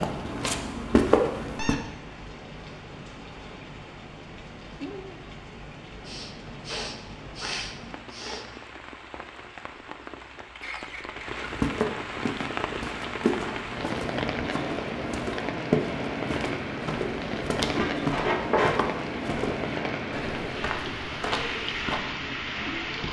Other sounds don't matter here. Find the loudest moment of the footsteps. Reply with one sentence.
The volume of the footsteps peaks at 1 second.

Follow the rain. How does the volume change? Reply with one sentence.
The loudness of the rain goes up.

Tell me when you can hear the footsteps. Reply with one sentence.
You can hear the footsteps from 0.0 to 1.8 s and from 11.3 to 22.1 s.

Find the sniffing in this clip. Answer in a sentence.
The sniffing can be heard from 6.0 to 8.6 s.